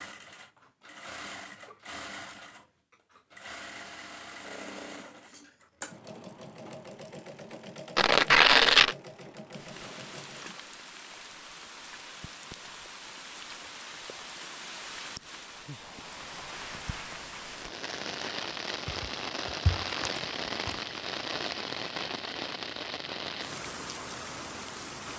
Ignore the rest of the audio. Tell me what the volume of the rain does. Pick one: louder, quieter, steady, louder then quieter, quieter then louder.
louder.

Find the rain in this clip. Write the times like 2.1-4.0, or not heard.
9.5-25.1.